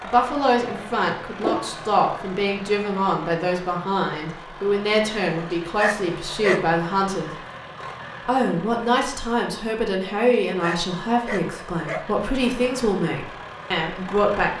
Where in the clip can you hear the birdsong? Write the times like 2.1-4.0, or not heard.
not heard.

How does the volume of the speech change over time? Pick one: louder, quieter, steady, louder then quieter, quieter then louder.
steady.